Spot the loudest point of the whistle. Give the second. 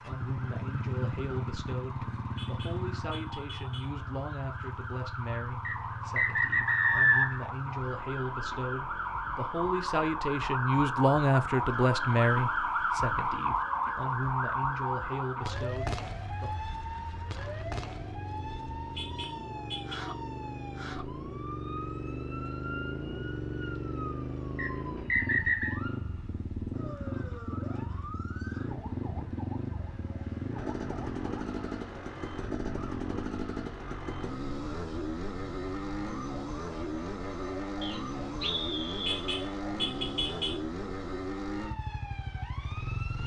7 s.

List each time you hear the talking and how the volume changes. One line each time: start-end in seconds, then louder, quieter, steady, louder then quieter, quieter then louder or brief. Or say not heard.
0.0-16.6 louder then quieter.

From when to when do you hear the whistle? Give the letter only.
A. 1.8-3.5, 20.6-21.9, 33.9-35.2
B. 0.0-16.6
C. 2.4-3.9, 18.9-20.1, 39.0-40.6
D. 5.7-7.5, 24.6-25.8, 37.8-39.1
D.